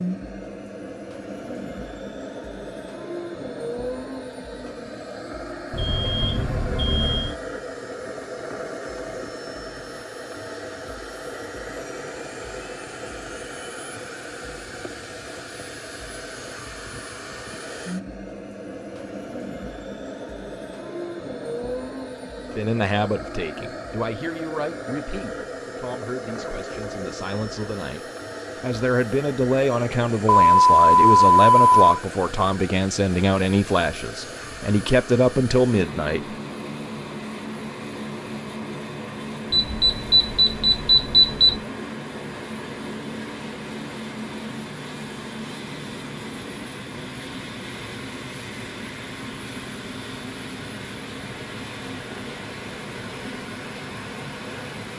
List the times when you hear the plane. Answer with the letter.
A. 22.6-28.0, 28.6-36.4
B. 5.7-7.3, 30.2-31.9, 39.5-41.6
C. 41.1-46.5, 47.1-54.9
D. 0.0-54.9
D.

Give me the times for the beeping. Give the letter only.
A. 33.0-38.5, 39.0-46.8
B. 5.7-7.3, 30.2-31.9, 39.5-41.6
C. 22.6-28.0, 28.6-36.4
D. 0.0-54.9
B.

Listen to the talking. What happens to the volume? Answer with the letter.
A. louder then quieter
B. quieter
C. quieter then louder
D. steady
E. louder
C.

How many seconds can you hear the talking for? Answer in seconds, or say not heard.
13 s.